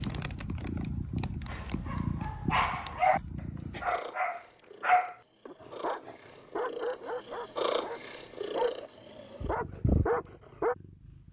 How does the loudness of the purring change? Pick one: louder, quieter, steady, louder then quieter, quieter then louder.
quieter then louder.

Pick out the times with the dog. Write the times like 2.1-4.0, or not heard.
1.4-3.2, 3.8-10.8.